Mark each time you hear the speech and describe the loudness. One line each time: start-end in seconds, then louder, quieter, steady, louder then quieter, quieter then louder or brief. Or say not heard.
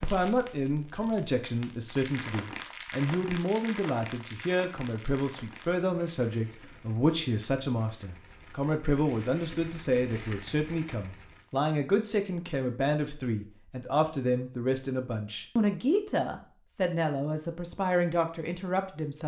0.0-19.2 steady.